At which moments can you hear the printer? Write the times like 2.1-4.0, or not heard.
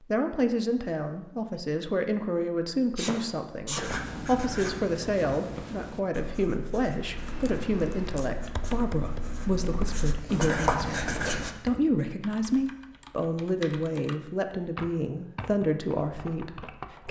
not heard.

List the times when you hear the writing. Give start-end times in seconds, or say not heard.
3.8-11.6.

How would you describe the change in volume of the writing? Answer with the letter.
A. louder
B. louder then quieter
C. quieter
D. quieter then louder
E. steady
D.